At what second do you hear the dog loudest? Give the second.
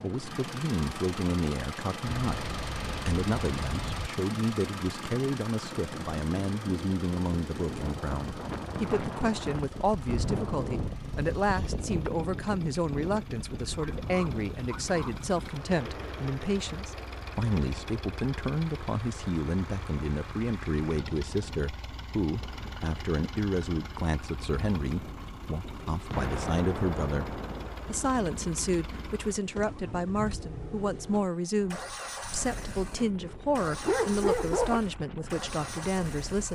34 s.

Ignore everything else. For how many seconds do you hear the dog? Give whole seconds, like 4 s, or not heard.
3 s.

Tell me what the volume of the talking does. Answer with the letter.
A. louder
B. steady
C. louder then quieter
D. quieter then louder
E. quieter
B.